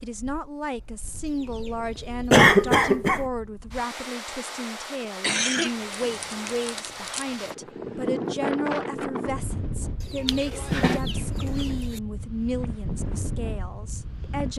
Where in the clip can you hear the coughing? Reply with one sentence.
You can hear the coughing from 2.3 to 3.2 s, from 5.2 to 7.2 s and from 10.2 to 11.0 s.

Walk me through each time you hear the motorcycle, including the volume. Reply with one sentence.
You can't hear the motorcycle here.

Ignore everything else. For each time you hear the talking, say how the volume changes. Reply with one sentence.
You can hear the talking from 0.0 to 14.5 s, at a steady volume.